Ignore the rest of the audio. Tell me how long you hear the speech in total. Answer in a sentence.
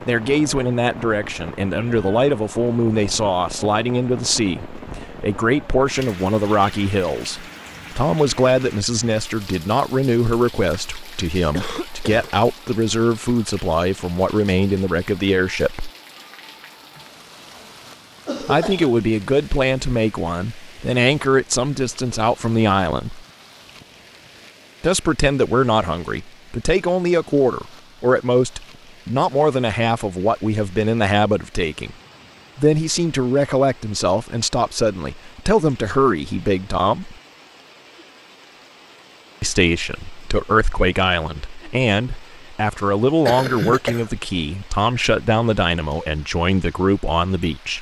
You can hear the speech for 41 seconds altogether.